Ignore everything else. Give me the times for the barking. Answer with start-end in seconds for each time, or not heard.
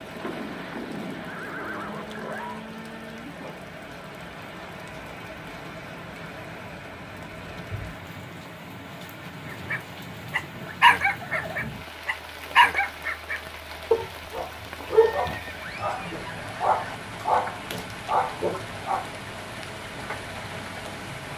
9.5-19.1.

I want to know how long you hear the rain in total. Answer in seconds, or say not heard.
21 s.